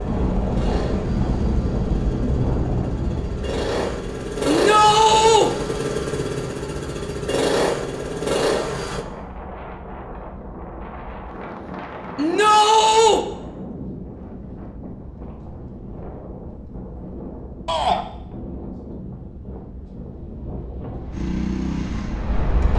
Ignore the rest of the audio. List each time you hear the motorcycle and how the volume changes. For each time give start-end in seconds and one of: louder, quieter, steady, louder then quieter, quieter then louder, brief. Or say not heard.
0.0-9.1 louder
21.1-22.4 brief.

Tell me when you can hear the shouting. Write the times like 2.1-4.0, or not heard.
4.5-5.5, 12.2-13.2, 17.6-18.1.